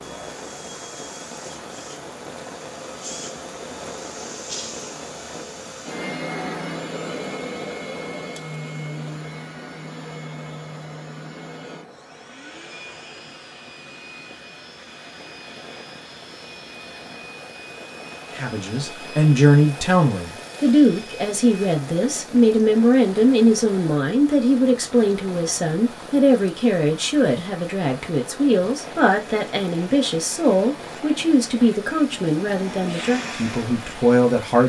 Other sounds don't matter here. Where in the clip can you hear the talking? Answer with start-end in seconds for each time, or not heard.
18.4-34.6.